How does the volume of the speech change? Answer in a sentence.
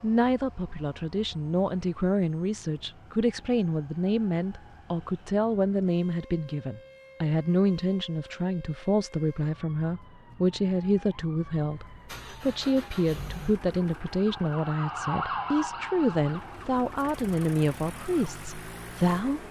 The loudness of the speech stays about the same.